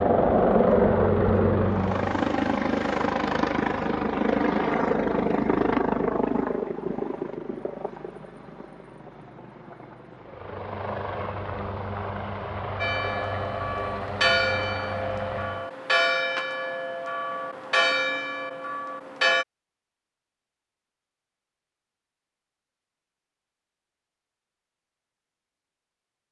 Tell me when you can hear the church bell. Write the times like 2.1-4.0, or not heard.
12.8-19.4.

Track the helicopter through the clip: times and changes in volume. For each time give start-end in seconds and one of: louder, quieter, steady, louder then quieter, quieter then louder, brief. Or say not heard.
0.0-15.7 quieter.